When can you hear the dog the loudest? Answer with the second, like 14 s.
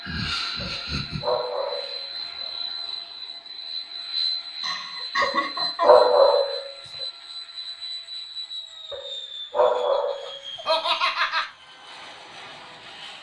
6 s.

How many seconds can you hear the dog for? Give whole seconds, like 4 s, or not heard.
5 s.